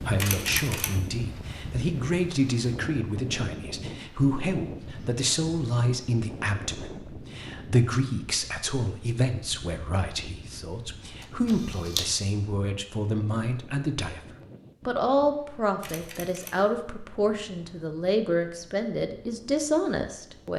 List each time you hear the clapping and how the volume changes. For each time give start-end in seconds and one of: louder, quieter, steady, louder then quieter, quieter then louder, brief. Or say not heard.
not heard.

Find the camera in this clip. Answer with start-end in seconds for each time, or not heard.
0.1-0.9, 11.2-12.1, 15.8-16.6.